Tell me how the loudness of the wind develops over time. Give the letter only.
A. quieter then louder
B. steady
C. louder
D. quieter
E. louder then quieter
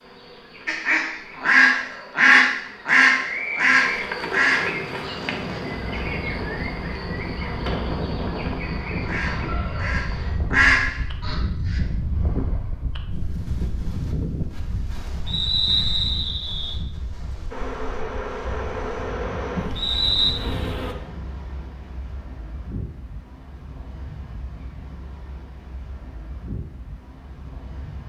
D.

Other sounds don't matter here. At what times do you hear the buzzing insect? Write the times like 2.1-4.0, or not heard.
0.0-10.3, 17.5-20.9.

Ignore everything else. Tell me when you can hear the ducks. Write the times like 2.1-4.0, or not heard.
0.7-6.0, 9.1-11.8.